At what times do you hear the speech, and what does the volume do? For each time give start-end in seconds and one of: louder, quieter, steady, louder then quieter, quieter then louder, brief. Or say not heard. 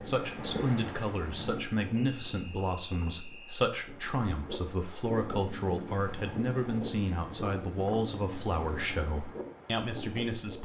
0.1-10.6 steady.